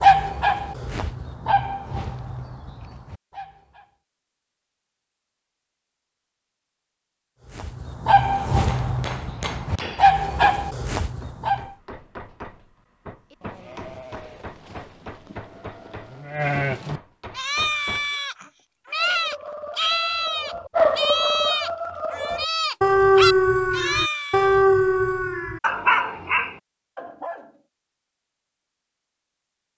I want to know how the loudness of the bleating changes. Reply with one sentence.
The loudness of the bleating goes up.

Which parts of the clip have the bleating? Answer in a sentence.
The bleating can be heard from 13.3 to 24.6 s.